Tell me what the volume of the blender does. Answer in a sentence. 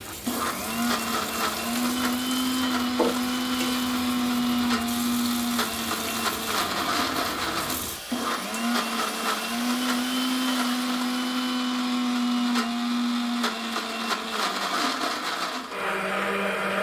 The volume of the blender stays about the same.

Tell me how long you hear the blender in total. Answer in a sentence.
You can hear the blender for 17 seconds altogether.